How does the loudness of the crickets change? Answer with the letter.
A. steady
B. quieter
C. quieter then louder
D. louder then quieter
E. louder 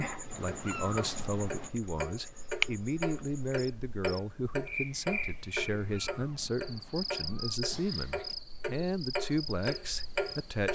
D.